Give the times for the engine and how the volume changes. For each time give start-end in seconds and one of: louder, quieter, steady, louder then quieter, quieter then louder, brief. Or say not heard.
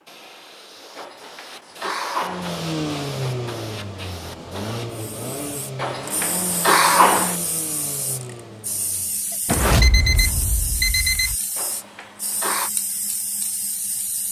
2.2-9.4 quieter.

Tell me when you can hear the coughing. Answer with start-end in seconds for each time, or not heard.
0.9-2.5, 5.8-7.3, 11.6-12.7.